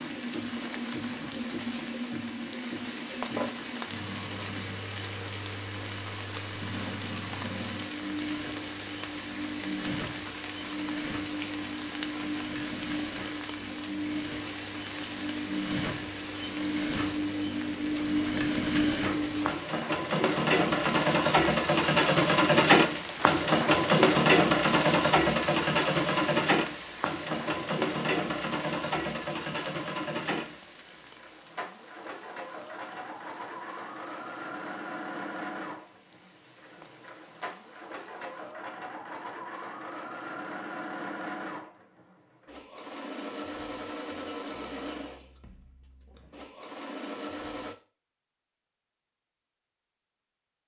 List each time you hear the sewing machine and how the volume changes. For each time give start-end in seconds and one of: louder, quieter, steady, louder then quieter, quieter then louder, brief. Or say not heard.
0.0-47.8 louder then quieter.